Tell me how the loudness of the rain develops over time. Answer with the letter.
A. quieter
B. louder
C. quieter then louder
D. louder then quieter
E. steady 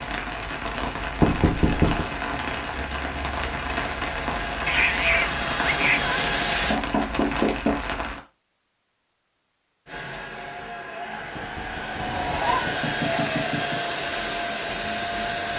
E.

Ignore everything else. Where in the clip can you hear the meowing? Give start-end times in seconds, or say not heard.
4.7-6.3, 11.9-12.7.